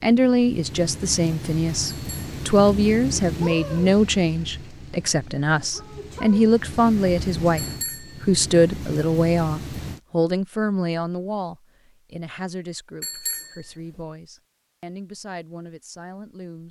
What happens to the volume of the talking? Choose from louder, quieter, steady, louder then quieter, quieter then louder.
quieter.